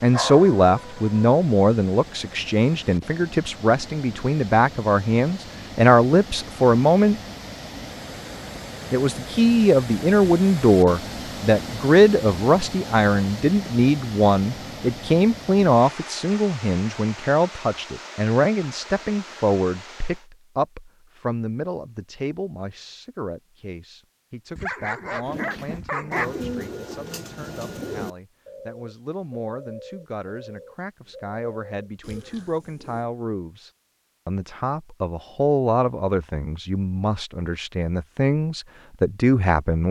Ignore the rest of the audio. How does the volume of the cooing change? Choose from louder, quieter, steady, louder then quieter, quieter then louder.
quieter.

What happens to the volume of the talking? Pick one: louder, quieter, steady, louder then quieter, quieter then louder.
quieter then louder.